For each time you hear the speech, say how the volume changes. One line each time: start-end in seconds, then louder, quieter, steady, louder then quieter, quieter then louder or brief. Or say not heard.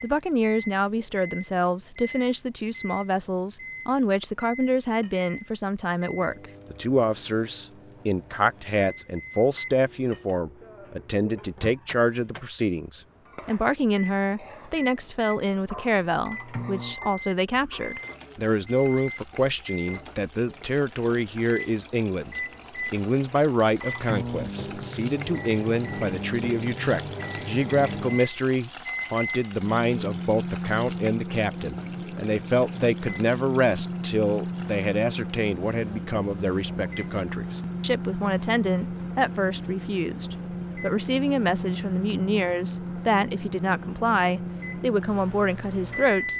0.0-46.3 steady.